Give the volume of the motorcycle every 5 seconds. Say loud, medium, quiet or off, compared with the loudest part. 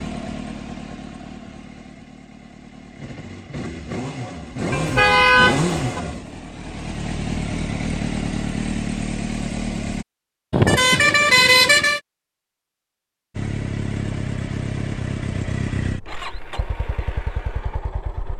medium, loud, loud, medium.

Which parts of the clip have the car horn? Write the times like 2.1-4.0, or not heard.
4.7-6.0, 10.5-12.0.